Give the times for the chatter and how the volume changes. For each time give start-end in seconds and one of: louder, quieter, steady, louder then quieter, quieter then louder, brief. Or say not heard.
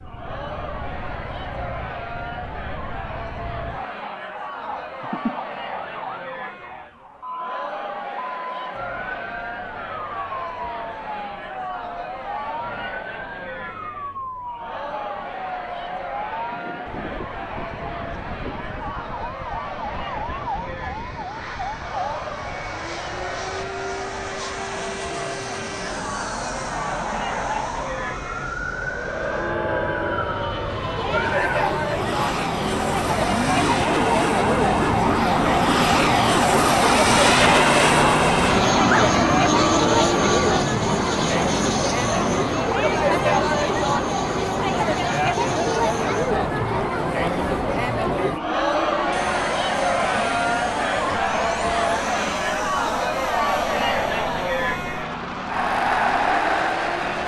0.0-57.2 louder.